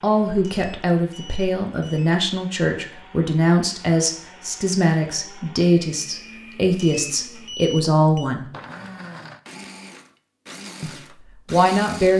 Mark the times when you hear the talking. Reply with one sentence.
You can hear the talking from 0.0 to 8.4 s and from 10.8 to 12.1 s.